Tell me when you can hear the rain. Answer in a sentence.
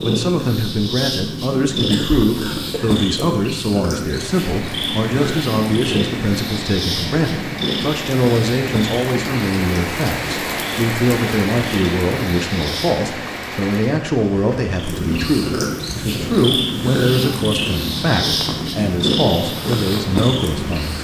You can hear the rain from 4.0 to 20.9 s.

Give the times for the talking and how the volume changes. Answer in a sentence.
You can hear the talking from 0.0 to 20.9 s, at a steady volume.